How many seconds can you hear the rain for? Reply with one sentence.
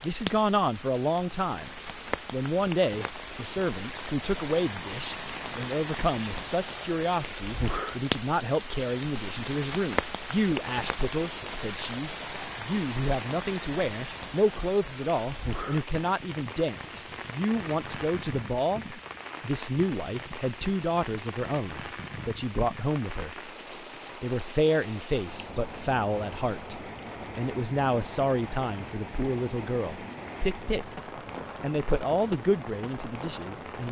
The rain can be heard for 34 seconds in total.